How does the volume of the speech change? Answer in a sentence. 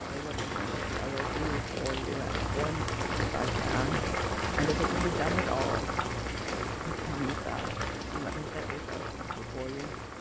The volume of the speech goes up, then down.